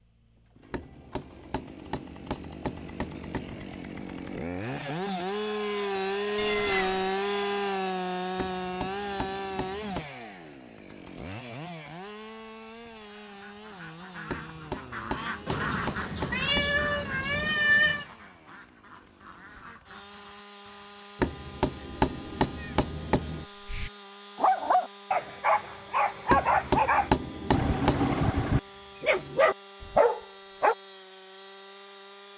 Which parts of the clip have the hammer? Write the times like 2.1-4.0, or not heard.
0.7-3.5, 8.3-10.1, 14.2-16.9, 21.2-23.4, 26.2-28.1.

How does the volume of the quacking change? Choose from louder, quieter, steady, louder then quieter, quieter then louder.
louder then quieter.